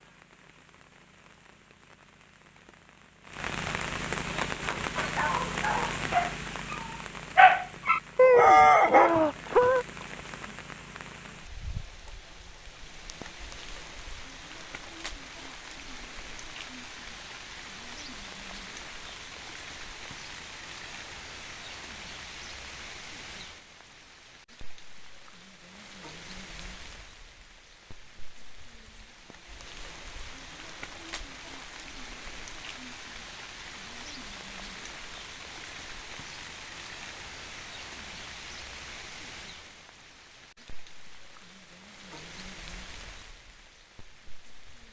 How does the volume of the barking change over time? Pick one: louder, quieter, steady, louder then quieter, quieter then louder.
louder.